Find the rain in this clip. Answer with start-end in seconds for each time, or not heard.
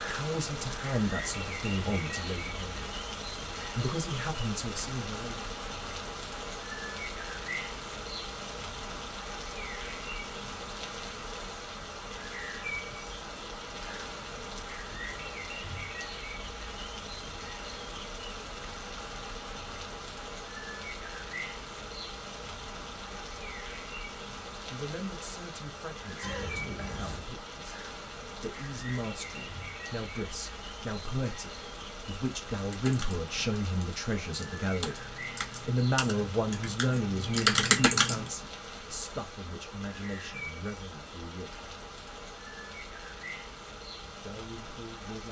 0.0-45.2.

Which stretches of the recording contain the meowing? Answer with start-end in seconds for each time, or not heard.
26.2-27.3.